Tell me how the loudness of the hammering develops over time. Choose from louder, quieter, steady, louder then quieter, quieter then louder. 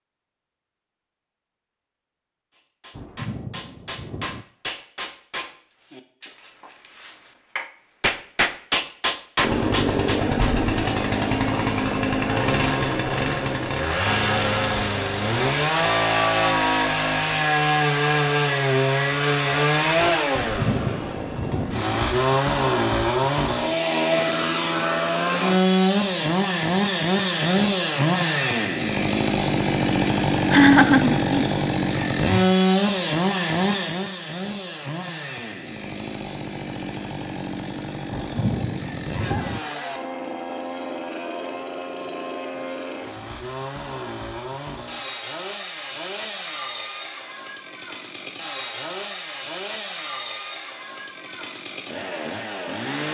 quieter then louder.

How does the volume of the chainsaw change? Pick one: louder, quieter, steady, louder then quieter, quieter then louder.
quieter.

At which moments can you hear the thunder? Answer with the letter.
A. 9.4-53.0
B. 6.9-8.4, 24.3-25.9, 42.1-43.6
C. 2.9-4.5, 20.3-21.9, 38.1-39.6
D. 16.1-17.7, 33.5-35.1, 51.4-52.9
C.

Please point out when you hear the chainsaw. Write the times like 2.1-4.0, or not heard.
9.4-53.0.